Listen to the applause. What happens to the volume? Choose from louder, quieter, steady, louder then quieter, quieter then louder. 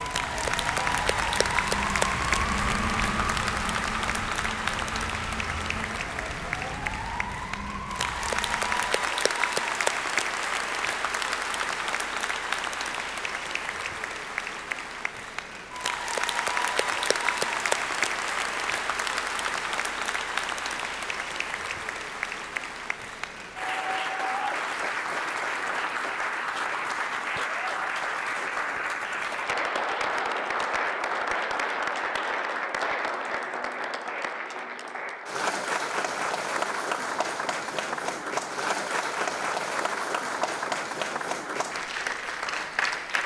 steady.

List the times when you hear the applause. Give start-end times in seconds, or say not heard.
0.0-43.2.